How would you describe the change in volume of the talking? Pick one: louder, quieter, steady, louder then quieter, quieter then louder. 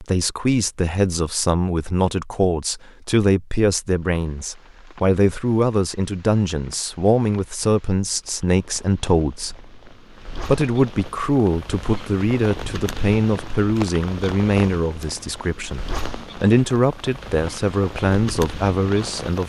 steady.